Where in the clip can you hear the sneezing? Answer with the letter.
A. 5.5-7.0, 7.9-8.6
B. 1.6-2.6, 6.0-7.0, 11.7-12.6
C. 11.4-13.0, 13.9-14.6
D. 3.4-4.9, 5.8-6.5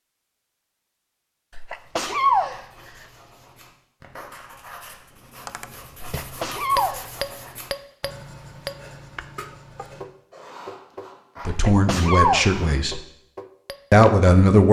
B.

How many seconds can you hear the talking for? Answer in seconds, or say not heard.
2 s.